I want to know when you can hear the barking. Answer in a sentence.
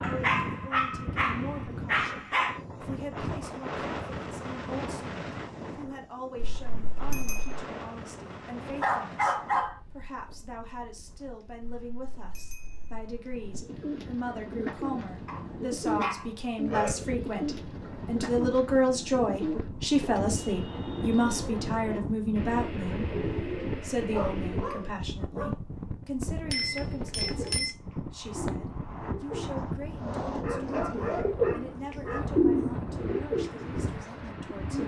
You can hear the barking from 0.0 to 2.6 s, from 8.8 to 9.8 s, from 15.2 to 17.1 s, from 24.1 to 25.6 s and from 30.4 to 32.2 s.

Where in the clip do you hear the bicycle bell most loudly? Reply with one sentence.
The volume of the bicycle bell peaks at 27 seconds.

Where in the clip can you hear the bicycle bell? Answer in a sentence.
You can hear the bicycle bell from 6.3 to 7.6 s, from 11.6 to 13.7 s and from 26.5 to 27.7 s.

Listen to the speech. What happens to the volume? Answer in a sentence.
The volume of the speech goes up, then down.